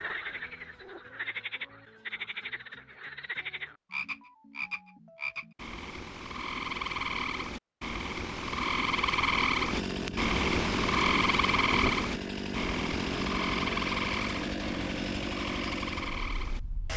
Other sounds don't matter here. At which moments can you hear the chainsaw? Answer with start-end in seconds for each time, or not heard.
9.7-16.9.